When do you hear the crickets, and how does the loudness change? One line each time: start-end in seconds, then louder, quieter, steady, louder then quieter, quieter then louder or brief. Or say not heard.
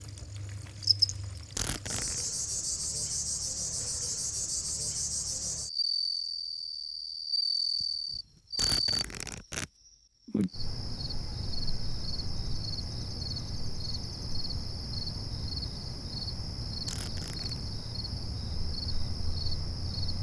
0.0-9.1 steady
10.2-20.1 steady.